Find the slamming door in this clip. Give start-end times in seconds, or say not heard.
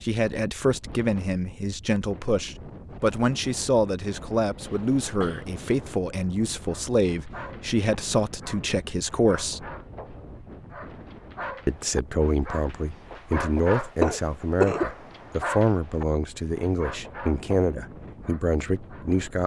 not heard.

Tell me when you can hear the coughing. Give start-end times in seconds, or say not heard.
4.5-5.5, 14.0-14.8.